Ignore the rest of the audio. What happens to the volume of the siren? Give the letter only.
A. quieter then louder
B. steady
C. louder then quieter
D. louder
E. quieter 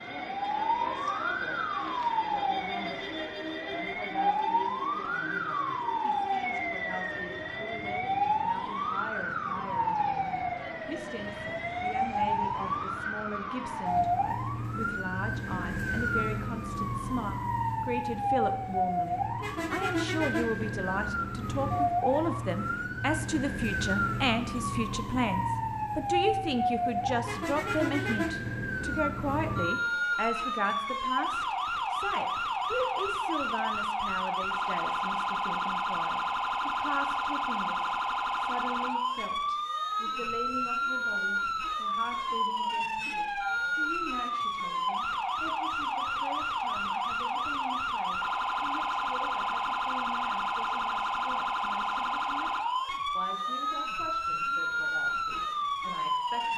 B.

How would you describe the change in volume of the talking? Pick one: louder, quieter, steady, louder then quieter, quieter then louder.
louder then quieter.